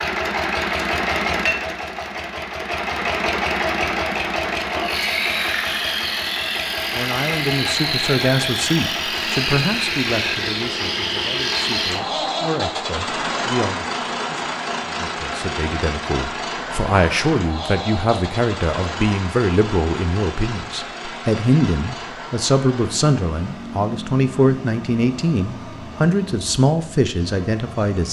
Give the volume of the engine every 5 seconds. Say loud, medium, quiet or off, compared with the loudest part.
loud, loud, loud, medium, medium, quiet.